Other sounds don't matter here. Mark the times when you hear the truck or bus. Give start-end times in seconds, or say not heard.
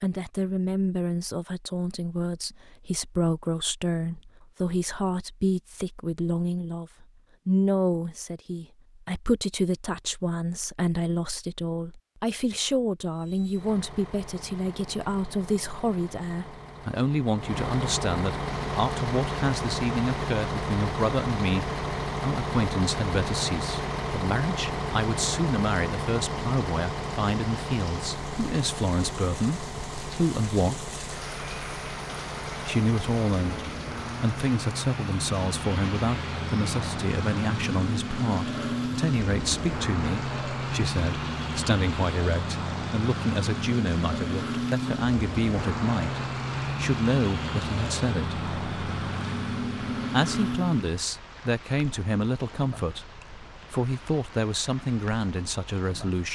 13.1-51.0.